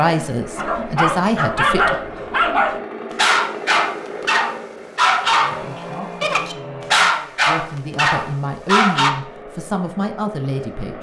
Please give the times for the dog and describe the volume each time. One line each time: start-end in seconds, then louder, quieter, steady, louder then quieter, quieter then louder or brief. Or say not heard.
0.6-9.2 steady.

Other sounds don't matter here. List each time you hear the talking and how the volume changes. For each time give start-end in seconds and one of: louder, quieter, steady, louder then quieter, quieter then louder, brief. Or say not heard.
0.0-1.9 brief
5.5-10.9 louder.